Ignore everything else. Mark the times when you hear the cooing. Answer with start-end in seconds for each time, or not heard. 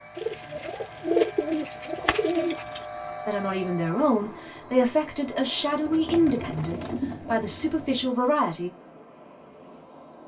0.1-2.8, 5.8-8.1.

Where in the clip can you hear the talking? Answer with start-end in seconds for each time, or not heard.
3.2-8.7.